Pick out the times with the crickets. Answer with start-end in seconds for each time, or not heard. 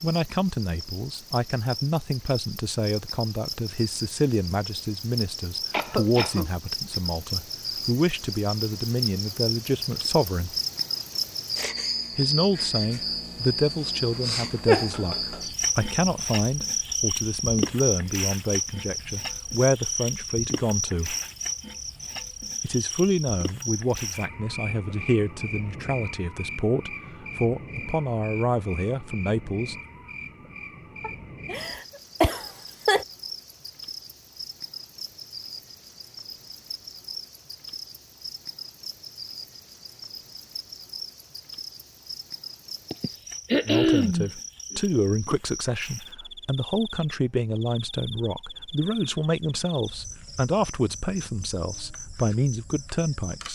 0.0-53.4.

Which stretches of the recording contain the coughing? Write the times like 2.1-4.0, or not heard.
5.7-6.5, 31.0-33.0, 42.9-44.8.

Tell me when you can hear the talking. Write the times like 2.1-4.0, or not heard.
0.0-10.6, 12.2-21.1, 22.6-29.8, 43.6-53.4.